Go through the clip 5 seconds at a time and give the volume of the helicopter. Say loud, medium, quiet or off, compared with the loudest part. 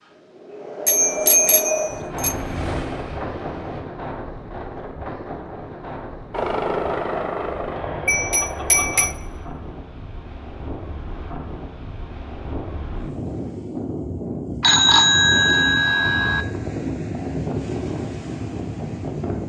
medium, loud, off, off.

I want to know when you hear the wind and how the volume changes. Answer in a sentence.
You can hear the wind from 0.0 to 19.4 s, getting quieter then louder.